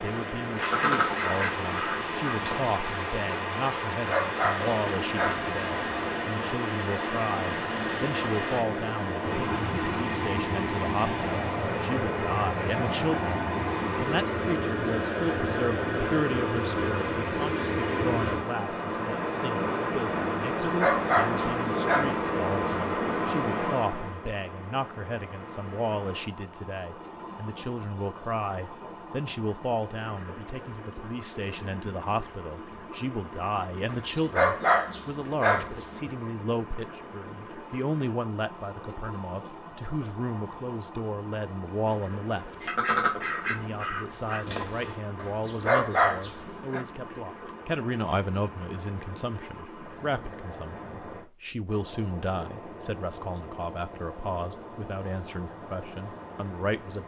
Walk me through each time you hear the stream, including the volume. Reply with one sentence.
You can hear the stream from 0.0 to 57.0 s, getting quieter.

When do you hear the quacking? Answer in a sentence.
You can hear the quacking from 0.6 to 2.8 s and from 42.6 to 45.0 s.